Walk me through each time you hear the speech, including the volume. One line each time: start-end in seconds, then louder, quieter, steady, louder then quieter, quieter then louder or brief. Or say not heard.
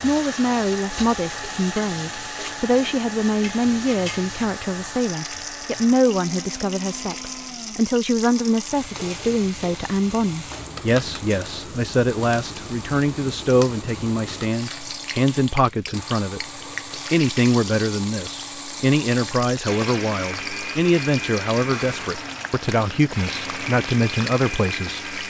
0.0-25.1 steady.